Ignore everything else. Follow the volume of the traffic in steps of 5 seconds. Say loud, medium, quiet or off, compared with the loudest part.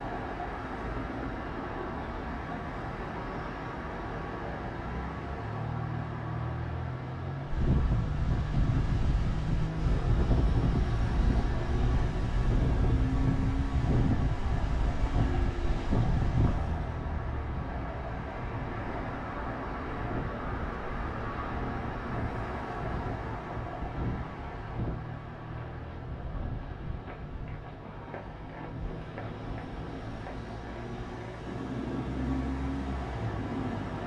loud, loud, loud, loud, loud, medium, loud.